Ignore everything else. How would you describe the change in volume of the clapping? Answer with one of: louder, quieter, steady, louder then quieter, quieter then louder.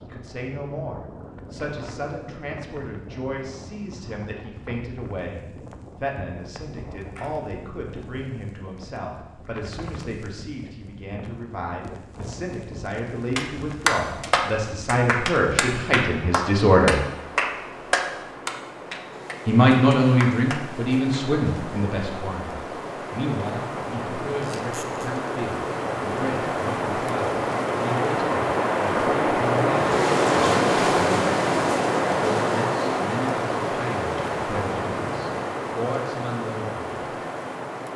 quieter.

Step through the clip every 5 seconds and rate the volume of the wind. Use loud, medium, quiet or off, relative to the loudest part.
quiet, quiet, quiet, quiet, medium, loud, loud, medium.